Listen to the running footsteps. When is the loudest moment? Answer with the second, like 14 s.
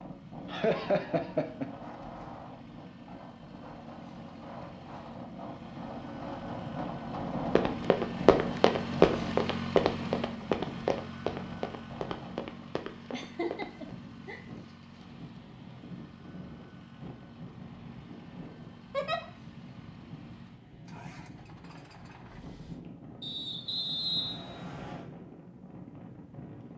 9 s.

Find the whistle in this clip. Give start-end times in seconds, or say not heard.
23.2-25.1.